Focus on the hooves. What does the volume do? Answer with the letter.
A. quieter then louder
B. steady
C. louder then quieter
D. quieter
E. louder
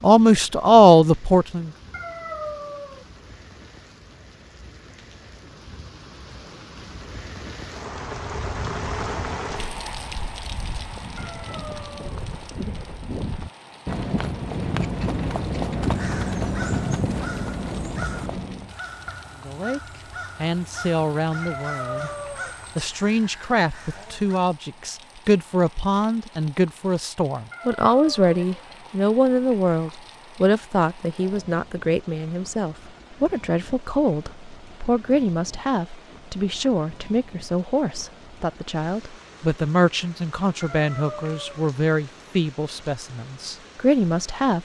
E.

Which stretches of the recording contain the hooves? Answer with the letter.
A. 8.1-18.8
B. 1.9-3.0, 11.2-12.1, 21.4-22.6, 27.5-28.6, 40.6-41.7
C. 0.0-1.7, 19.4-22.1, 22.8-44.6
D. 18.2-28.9
A.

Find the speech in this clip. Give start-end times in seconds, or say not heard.
0.0-1.7, 19.4-22.1, 22.8-44.6.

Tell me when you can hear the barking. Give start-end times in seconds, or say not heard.
1.9-3.0, 11.2-12.1, 21.4-22.6, 27.5-28.6, 40.6-41.7.